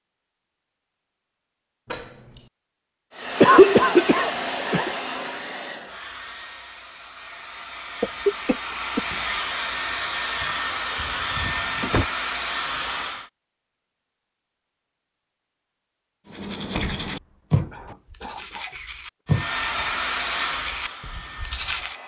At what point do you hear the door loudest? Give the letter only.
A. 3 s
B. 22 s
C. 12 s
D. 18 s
C.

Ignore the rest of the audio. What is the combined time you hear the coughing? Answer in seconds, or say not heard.
4 s.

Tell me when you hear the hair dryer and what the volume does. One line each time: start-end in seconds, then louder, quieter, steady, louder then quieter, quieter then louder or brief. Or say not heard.
3.1-13.3 quieter then louder
19.2-22.0 brief.